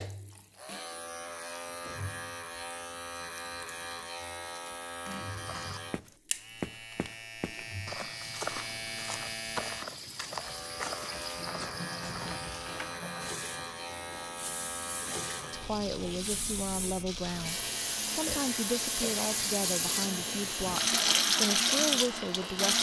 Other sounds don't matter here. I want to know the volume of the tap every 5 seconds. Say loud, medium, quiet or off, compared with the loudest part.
quiet, quiet, quiet, medium, loud.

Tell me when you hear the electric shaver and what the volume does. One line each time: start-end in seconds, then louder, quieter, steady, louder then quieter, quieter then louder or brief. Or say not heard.
0.0-22.7 steady.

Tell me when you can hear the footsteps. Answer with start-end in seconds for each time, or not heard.
5.3-12.9.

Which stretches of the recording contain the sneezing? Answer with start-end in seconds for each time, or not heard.
not heard.